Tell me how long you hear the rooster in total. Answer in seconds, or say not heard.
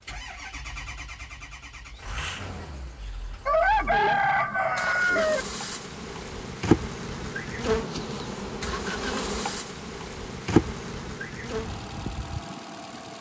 2 s.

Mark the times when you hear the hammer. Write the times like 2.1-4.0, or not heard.
not heard.